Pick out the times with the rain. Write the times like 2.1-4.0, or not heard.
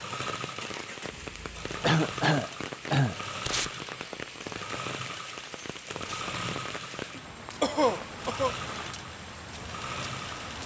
0.0-10.6.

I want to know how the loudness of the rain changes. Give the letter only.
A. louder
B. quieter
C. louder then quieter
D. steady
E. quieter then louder
D.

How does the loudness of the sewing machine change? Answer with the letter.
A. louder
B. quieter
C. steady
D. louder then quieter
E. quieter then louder
C.